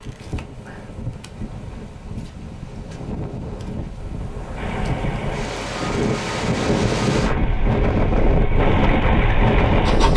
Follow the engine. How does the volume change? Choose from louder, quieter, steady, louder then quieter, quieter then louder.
louder.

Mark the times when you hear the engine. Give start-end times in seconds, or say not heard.
4.5-10.1.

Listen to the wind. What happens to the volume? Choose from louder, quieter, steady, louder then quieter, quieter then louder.
louder.